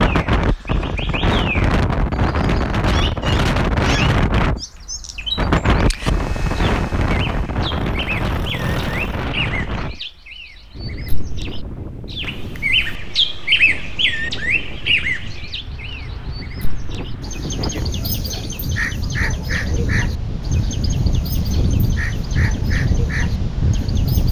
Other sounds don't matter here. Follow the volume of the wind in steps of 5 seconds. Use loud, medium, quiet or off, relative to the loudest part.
loud, loud, quiet, medium, loud.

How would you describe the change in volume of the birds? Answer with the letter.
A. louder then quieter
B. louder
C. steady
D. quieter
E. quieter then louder
A.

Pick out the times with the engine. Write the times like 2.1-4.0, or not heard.
5.9-9.3.